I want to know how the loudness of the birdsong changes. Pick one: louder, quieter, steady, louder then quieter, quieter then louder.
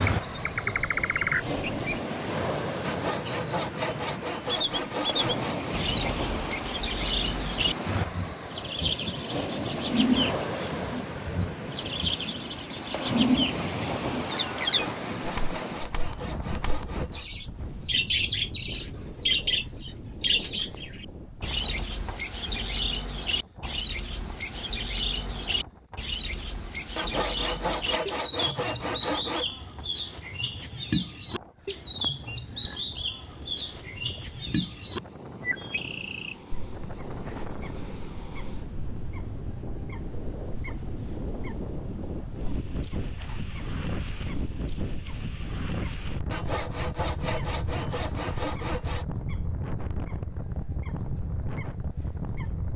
quieter.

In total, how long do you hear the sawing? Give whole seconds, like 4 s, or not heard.
11 s.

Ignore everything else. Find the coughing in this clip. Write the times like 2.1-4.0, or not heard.
not heard.